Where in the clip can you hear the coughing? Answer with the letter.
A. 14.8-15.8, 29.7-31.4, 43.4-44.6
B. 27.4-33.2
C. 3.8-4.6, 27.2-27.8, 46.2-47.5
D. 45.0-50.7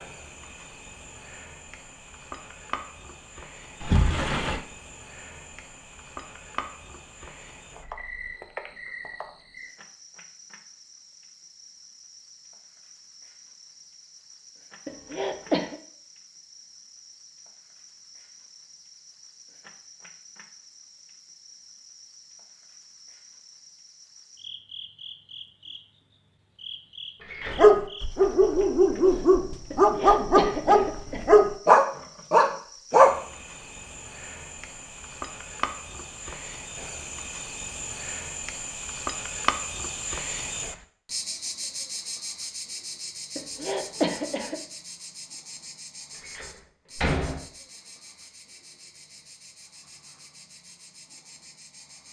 A.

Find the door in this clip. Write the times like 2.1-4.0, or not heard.
3.8-4.6, 27.2-27.8, 46.2-47.5.